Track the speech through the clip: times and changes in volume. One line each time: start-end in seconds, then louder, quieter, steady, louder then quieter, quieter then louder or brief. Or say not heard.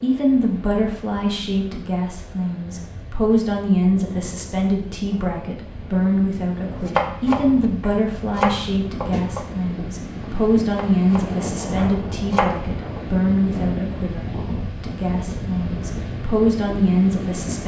0.0-17.6 steady.